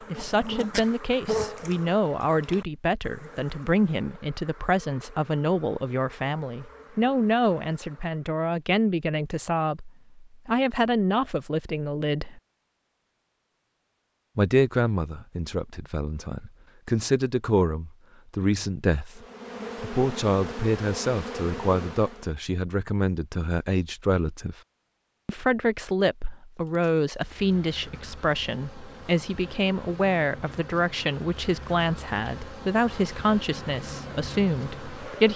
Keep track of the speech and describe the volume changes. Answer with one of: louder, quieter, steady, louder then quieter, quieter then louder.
steady.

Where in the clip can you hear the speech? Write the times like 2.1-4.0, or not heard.
0.1-12.4, 14.3-24.6, 25.2-35.3.